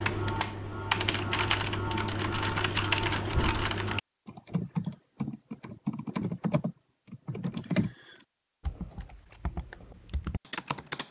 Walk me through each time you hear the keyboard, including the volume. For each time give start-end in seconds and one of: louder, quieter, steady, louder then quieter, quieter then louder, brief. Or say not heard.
0.0-11.0 quieter.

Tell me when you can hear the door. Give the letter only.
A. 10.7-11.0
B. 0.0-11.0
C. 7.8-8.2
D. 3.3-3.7
D.